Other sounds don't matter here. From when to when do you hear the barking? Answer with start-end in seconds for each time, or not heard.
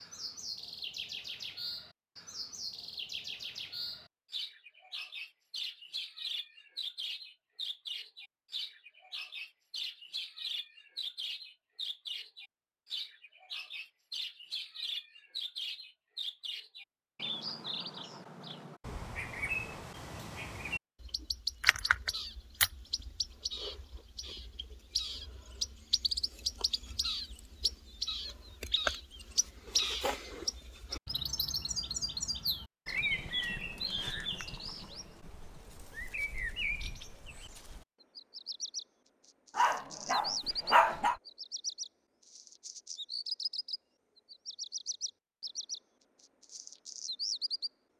39.5-41.1.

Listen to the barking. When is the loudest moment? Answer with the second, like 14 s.
41 s.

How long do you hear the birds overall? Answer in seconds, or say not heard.
48 s.